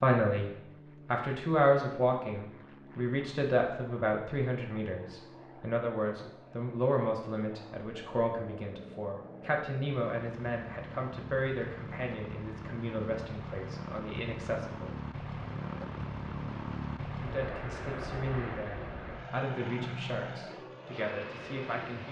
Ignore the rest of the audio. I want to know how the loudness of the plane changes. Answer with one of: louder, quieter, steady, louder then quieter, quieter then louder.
louder.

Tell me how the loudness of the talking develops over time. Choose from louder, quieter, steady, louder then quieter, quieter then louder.
quieter.